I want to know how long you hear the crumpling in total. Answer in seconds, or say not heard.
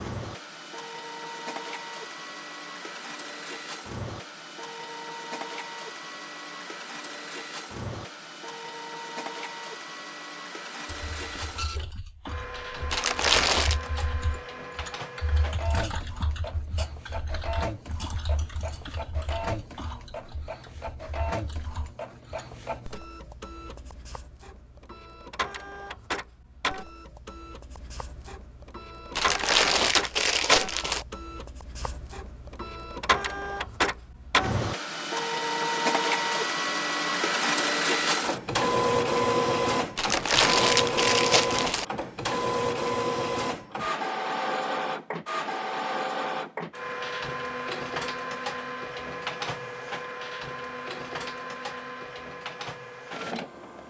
5 s.